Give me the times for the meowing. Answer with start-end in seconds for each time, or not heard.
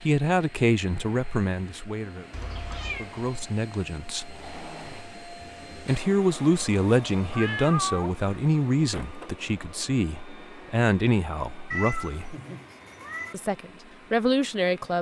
2.3-3.1, 7.2-8.2, 11.7-13.3.